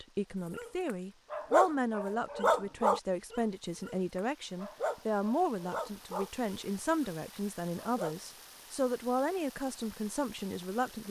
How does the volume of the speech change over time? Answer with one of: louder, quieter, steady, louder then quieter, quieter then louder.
steady.